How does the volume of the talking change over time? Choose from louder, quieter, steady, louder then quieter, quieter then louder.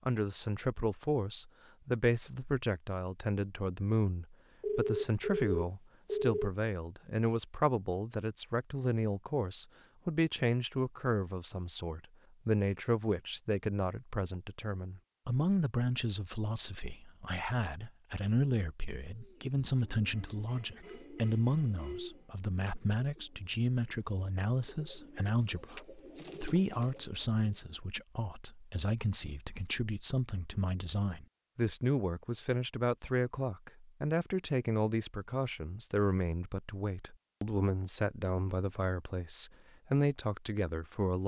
steady.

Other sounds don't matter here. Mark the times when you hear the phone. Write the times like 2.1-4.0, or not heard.
4.6-6.5.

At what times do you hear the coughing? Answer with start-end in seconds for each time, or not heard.
not heard.